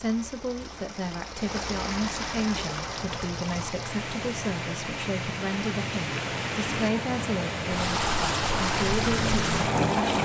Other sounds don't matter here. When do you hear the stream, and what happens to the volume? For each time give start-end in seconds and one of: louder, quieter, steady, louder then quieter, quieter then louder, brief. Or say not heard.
0.0-10.1 louder.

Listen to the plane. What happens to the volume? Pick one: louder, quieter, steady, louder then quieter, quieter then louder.
louder.